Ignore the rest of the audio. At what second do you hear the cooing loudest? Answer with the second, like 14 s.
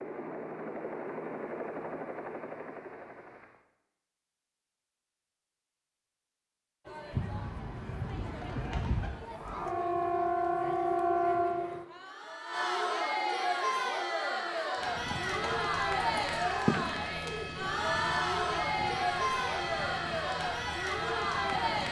17 s.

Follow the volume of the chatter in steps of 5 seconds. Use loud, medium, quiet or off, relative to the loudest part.
off, quiet, loud, loud, loud.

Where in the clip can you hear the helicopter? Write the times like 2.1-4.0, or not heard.
0.0-3.6, 14.8-21.8.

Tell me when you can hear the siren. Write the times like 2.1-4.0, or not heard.
9.3-11.8.